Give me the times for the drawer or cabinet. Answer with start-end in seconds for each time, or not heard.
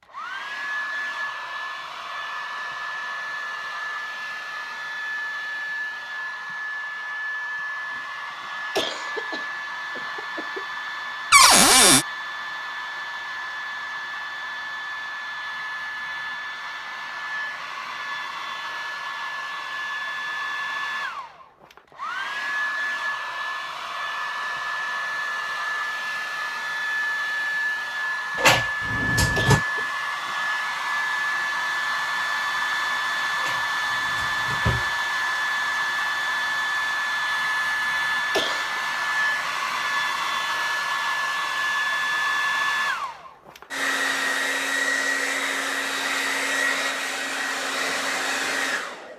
11.3-12.1, 28.4-29.6, 33.4-34.9.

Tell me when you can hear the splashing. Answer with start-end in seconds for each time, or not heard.
not heard.